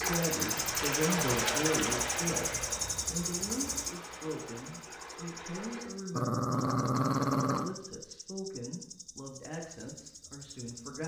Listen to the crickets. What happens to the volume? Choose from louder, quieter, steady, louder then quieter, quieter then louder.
quieter.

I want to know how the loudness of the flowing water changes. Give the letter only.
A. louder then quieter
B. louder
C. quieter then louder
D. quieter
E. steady
D.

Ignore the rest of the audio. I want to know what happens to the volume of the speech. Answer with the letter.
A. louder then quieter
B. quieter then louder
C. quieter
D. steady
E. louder
C.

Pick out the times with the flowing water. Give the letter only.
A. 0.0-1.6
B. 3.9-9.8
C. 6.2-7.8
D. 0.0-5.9
D.